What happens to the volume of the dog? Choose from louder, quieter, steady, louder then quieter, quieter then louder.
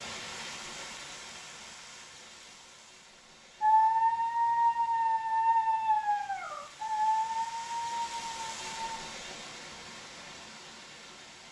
quieter.